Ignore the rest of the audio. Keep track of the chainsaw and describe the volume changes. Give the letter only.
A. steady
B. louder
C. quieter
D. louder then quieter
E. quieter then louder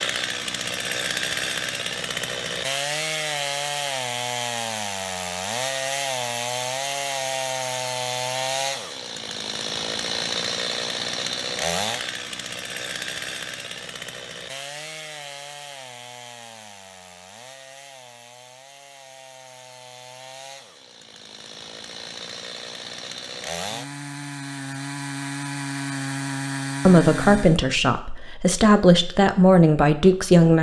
E.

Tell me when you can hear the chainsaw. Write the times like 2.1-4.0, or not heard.
0.0-27.6.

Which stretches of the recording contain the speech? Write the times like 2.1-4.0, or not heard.
26.9-30.5.